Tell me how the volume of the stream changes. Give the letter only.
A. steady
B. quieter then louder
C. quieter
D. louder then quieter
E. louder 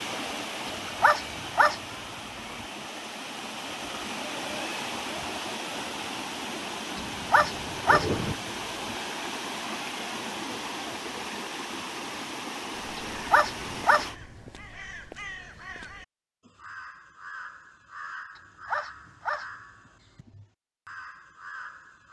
A.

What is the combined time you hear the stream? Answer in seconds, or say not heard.
14 s.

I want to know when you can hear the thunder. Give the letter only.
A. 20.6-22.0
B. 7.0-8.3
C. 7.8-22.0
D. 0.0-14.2
B.